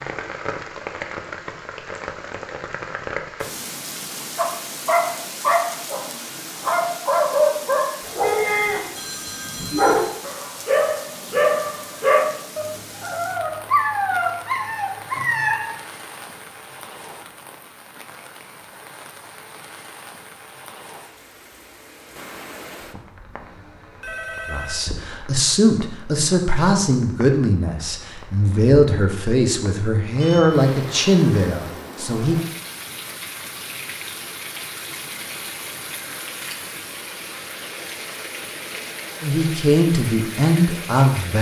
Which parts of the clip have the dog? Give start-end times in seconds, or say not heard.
4.3-8.8, 9.6-15.6.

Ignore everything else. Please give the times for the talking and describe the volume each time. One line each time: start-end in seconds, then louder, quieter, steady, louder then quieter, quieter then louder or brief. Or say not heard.
24.4-32.4 steady
39.2-41.3 brief.